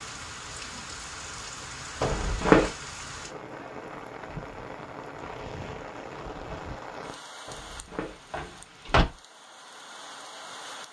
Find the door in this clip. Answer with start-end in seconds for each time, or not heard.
2.0-2.7, 7.5-9.1.